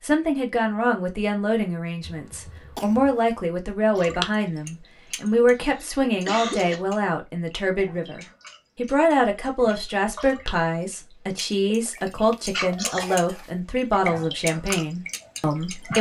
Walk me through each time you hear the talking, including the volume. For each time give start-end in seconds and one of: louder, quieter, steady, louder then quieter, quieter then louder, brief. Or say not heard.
0.0-15.9 steady.